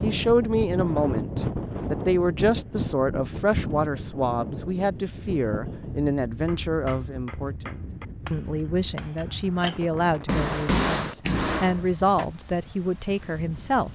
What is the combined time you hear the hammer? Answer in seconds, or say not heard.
6 s.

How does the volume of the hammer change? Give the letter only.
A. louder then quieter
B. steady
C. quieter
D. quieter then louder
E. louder
E.